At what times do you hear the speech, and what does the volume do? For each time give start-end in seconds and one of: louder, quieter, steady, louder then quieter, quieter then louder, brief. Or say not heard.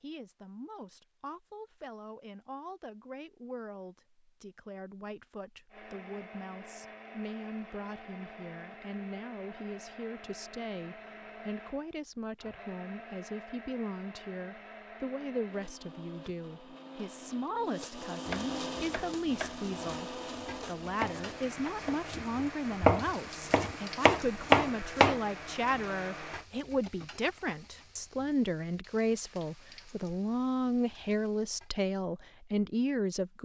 0.0-33.4 louder.